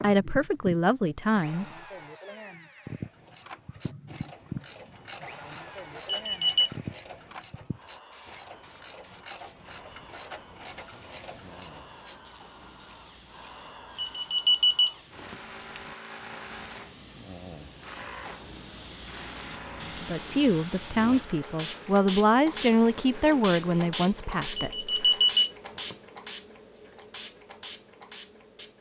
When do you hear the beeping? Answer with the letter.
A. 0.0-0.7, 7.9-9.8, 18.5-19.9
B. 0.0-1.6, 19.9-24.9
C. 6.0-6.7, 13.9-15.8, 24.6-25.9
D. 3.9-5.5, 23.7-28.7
C.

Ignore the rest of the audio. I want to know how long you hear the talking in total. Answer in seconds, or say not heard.
7 s.